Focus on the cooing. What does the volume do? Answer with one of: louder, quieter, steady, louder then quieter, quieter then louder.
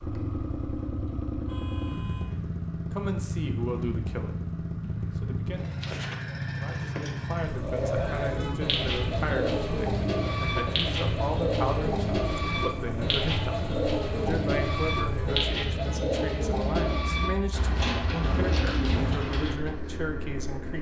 steady.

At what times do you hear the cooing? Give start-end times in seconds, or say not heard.
7.6-19.8.